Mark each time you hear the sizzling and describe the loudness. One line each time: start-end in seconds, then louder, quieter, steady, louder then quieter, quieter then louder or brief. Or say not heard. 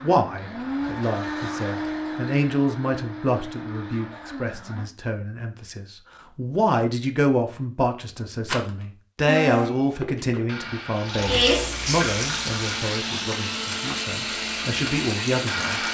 10.9-15.8 quieter.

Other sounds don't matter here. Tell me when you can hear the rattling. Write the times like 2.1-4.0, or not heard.
8.4-8.8.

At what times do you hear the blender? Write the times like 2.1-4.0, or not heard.
0.0-4.8, 9.2-15.8.